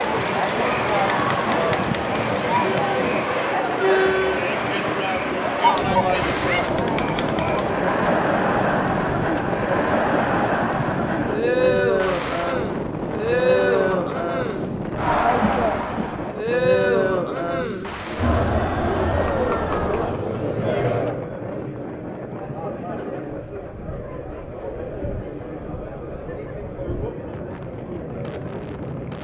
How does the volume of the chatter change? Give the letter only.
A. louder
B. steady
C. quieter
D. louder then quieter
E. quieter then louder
C.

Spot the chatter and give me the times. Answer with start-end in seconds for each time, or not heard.
0.0-29.1.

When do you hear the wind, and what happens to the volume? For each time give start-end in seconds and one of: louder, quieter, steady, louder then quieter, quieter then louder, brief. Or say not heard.
0.0-29.1 quieter.